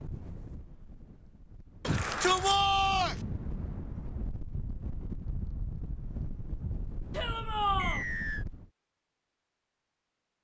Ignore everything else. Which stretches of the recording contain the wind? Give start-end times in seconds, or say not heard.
0.0-8.7.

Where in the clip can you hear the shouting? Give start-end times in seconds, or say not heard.
1.9-3.1, 7.1-8.1.